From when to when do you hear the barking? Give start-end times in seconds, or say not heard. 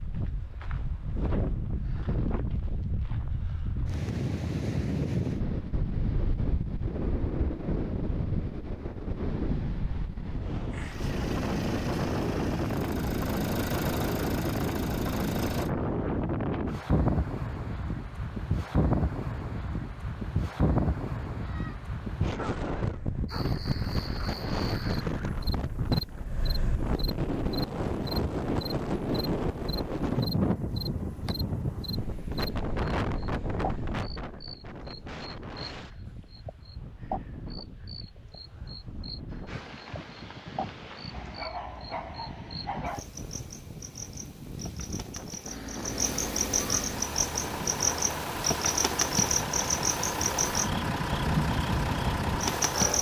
21.4-23.6, 41.1-43.0.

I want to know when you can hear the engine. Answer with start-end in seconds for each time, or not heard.
10.7-15.7, 45.4-52.9.